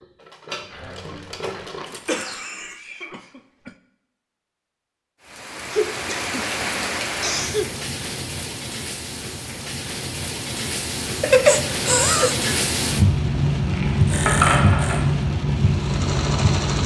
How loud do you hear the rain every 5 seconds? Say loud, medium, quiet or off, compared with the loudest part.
off, medium, loud, loud.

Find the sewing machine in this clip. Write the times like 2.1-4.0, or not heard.
0.0-2.5, 14.0-16.8.